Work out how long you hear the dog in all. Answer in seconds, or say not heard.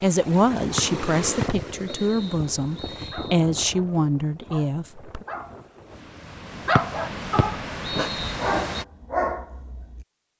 7 s.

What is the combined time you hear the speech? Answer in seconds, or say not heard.
5 s.